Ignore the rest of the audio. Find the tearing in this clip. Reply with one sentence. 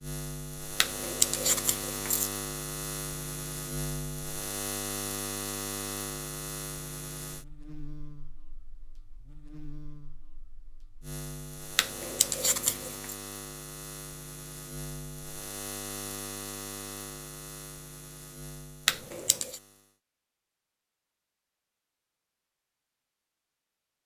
The tearing can be heard from 0.8 to 2.3 s, from 11.8 to 13.1 s and from 18.9 to 19.6 s.